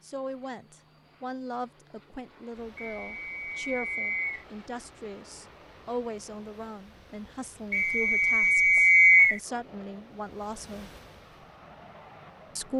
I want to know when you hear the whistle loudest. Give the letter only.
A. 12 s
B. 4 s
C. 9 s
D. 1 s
C.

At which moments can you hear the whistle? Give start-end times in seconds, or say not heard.
2.8-4.5, 7.7-9.4.